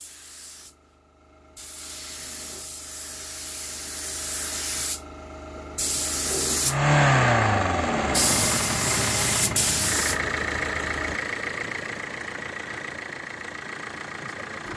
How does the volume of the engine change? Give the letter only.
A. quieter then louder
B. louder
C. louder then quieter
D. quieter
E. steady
D.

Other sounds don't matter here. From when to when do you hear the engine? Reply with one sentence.
You can hear the engine from 6.7 to 14.7 s.